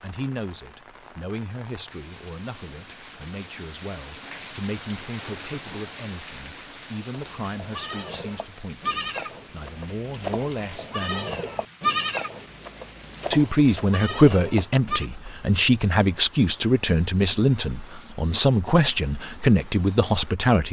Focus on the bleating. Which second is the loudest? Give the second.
12 s.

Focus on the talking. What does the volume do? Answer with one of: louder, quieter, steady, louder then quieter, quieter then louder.
louder.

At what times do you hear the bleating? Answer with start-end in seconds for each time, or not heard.
7.1-15.1.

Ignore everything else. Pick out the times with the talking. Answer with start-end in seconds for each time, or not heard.
0.0-11.3, 13.3-20.6.